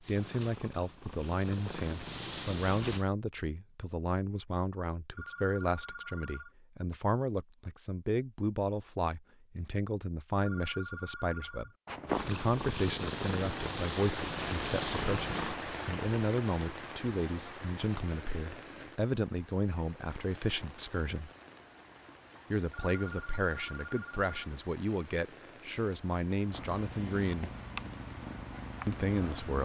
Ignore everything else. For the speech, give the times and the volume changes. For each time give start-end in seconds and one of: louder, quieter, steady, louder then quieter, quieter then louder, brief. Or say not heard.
0.1-21.3 steady
22.5-27.5 steady
28.9-29.6 brief.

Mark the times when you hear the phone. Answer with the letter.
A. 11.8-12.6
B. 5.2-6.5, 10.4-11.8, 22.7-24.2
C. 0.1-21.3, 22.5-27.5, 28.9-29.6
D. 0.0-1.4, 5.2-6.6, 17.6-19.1
B.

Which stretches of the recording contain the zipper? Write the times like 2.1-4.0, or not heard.
11.8-12.6.